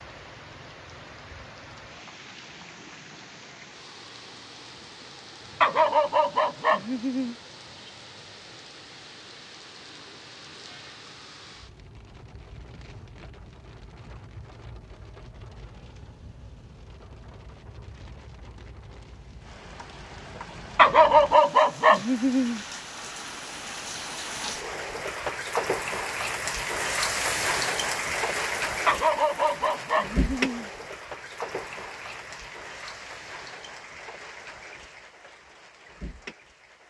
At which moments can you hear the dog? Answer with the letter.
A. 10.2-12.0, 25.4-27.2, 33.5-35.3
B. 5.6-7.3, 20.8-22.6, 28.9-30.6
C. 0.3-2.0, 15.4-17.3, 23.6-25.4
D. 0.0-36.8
B.